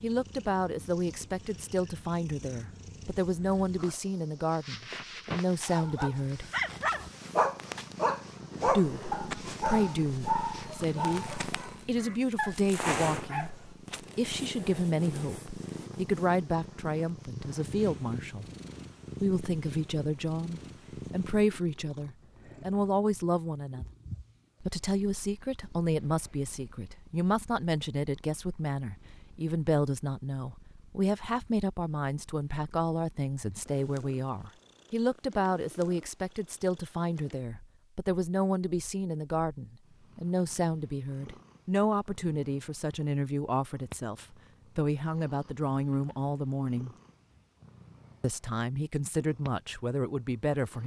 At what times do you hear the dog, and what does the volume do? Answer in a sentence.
You can hear the dog from 5.7 to 13.9 s, getting quieter.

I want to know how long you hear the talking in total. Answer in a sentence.
The talking can be heard for 45 seconds in total.